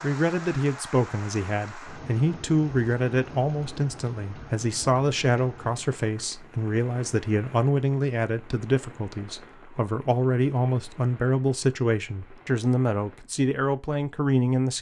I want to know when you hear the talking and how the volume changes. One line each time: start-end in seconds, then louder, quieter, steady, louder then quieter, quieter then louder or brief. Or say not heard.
0.0-14.7 steady.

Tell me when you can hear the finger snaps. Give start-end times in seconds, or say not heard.
not heard.